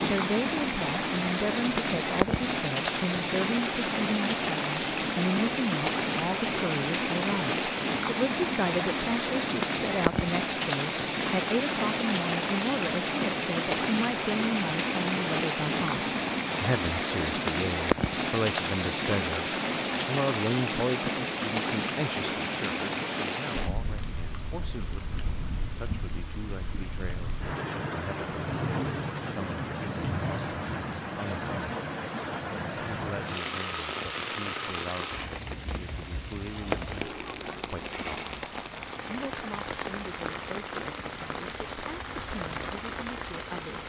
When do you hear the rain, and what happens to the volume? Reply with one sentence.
The rain can be heard from 0.0 to 43.8 s, getting quieter.